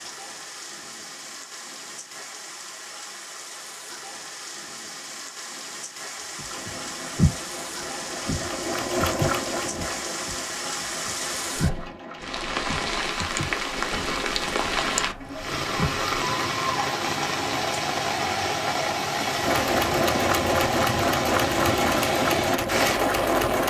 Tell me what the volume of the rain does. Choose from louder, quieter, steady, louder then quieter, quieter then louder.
louder.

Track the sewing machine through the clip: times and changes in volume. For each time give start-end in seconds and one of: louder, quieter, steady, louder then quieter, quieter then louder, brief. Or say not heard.
6.5-12.6 louder then quieter
19.4-23.6 steady.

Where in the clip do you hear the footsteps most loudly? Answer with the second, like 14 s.
7 s.